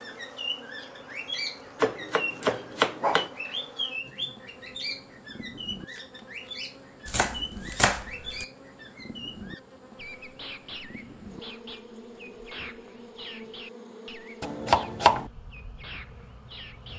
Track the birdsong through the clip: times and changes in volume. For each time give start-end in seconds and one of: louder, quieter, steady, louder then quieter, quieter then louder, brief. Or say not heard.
0.0-16.9 quieter.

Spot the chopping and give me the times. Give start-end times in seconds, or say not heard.
1.8-3.3, 7.0-8.4, 14.4-15.3.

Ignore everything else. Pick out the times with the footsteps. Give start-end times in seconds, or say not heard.
not heard.